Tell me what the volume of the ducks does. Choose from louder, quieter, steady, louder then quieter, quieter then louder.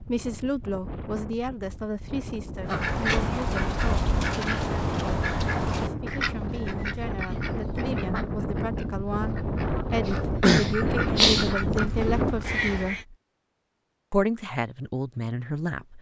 quieter then louder.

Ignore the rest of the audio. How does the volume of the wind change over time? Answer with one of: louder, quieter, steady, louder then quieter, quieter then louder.
louder.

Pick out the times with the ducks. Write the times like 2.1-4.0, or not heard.
2.6-13.1.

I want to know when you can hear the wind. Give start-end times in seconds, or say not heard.
0.0-12.6.